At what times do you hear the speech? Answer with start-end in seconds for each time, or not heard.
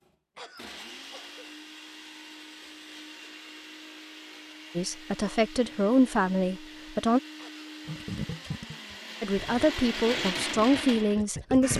4.8-7.2, 9.2-11.7.